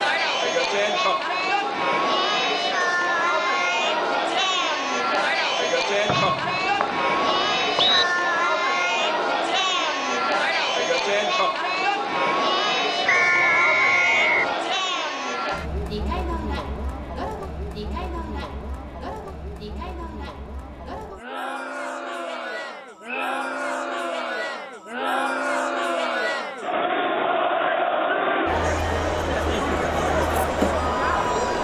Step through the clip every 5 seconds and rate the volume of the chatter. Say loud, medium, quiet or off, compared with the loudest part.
loud, loud, loud, medium, medium, loud, loud.